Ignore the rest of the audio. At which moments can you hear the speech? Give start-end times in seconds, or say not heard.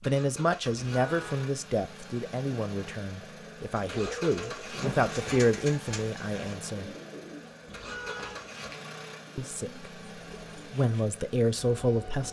0.1-6.9, 9.3-9.9, 10.7-12.2.